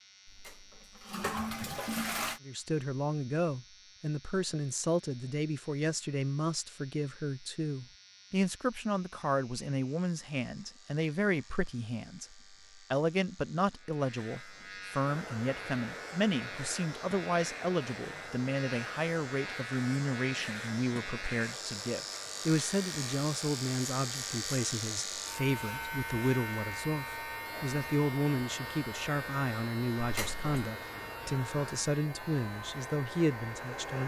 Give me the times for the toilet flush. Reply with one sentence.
You can hear the toilet flush from 0.2 to 2.4 s and from 30.0 to 30.7 s.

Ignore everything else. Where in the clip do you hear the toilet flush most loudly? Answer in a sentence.
The volume of the toilet flush peaks at 2 seconds.